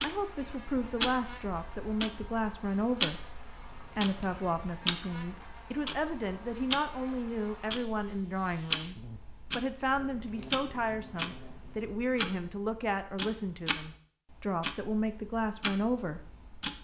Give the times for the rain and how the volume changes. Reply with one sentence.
You can't hear the rain here.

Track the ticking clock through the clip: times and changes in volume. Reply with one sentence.
You can hear the ticking clock from 0.0 to 16.7 s, getting quieter.